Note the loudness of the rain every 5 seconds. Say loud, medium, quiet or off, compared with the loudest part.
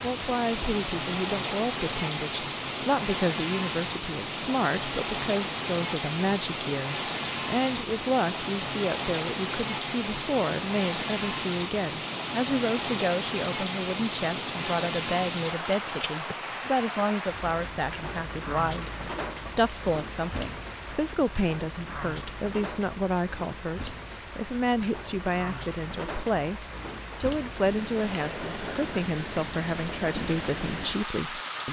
loud, loud, loud, loud, medium, medium, loud.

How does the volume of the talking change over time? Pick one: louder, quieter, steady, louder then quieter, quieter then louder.
steady.